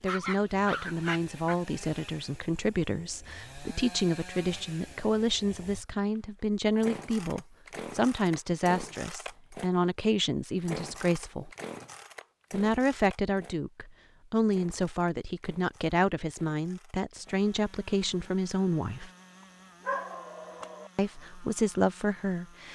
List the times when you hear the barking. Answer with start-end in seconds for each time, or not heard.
0.1-1.6, 19.8-20.9.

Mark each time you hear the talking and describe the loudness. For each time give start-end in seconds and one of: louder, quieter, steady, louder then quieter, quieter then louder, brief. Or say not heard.
0.0-11.5 steady
12.5-19.1 steady
20.9-22.7 brief.